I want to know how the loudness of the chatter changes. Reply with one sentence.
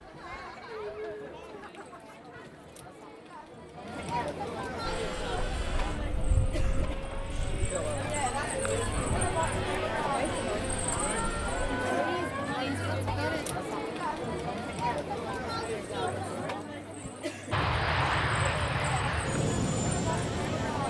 The volume of the chatter goes up, then down.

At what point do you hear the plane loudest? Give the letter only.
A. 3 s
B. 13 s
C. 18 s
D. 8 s
C.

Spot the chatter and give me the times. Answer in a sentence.
You can hear the chatter from 0.0 to 20.8 s.